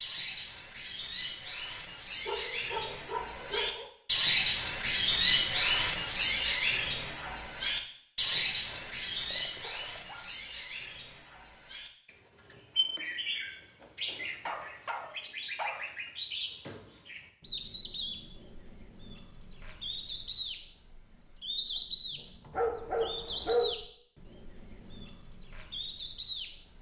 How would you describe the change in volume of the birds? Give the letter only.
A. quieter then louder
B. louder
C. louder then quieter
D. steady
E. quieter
E.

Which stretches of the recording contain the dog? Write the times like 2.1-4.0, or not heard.
2.2-3.9, 8.3-10.3, 14.2-16.1, 22.5-23.8.